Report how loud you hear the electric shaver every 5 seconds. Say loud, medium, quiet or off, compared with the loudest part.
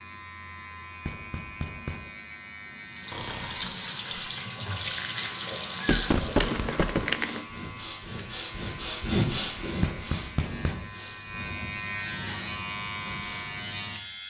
medium, medium, loud.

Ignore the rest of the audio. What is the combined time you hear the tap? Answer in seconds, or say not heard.
4 s.